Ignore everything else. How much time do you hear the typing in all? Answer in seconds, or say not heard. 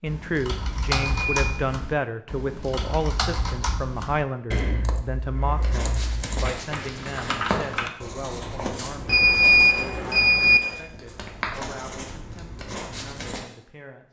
8 s.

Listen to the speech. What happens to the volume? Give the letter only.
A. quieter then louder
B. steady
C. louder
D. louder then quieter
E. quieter
E.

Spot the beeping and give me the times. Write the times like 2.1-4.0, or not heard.
0.9-1.5, 9.1-10.6.